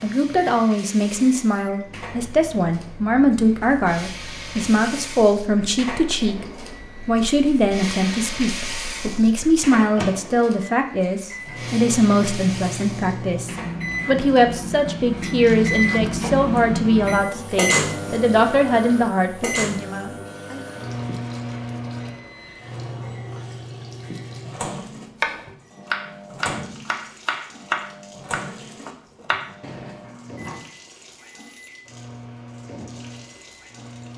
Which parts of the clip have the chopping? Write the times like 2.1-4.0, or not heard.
24.8-30.0.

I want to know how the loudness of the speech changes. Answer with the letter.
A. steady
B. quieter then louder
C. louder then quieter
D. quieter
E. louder
A.